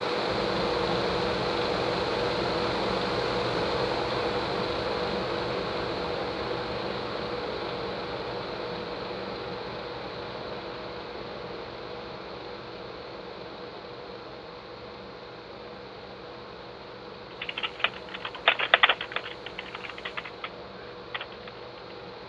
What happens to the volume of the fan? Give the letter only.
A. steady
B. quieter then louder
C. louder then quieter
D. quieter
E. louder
D.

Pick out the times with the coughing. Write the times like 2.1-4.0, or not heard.
not heard.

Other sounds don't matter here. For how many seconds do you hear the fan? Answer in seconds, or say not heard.
22 s.